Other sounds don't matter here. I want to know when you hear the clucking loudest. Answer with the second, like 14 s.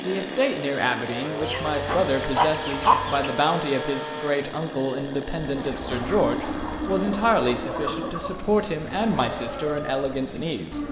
3 s.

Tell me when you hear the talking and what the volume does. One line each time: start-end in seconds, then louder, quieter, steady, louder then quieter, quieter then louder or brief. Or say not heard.
0.0-10.8 steady.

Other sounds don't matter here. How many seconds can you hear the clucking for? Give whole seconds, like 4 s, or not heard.
5 s.